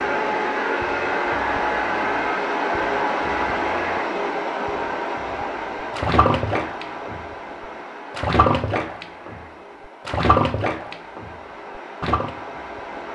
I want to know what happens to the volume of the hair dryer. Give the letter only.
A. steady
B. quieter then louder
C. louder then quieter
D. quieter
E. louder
D.